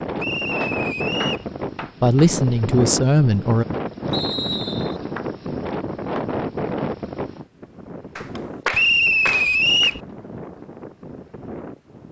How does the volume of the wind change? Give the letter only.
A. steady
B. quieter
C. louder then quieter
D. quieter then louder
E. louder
B.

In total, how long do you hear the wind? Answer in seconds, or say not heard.
12 s.